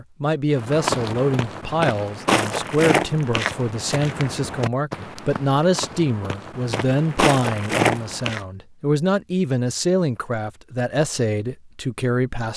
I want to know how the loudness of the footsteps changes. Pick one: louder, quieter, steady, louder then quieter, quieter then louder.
quieter then louder.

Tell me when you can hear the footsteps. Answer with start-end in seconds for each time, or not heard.
0.6-8.4.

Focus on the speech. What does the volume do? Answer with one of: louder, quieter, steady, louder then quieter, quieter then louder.
steady.